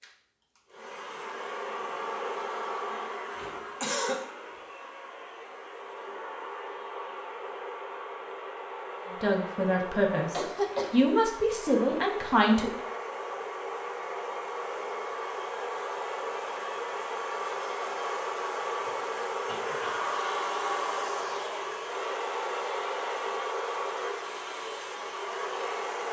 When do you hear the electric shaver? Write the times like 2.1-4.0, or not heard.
not heard.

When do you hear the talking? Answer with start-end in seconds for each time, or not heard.
9.2-12.7.